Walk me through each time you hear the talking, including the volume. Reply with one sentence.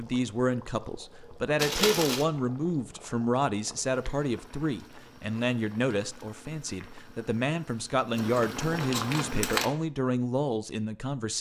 You can hear the talking from 0.0 to 11.3 s, at a steady volume.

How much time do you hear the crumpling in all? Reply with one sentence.
The crumpling can be heard for 2 seconds in total.